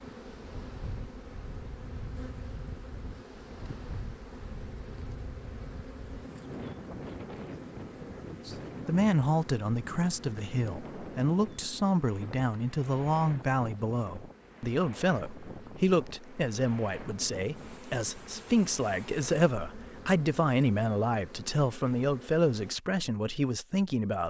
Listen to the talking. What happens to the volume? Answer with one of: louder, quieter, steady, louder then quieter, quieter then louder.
steady.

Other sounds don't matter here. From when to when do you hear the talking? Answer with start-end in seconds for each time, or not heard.
8.4-24.2.